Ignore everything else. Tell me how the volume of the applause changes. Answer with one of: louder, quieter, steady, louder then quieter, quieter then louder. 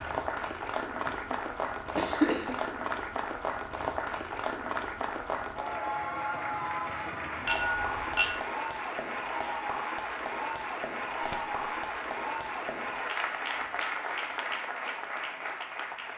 steady.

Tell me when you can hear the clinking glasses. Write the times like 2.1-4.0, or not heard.
7.5-8.4.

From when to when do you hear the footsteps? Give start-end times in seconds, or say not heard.
not heard.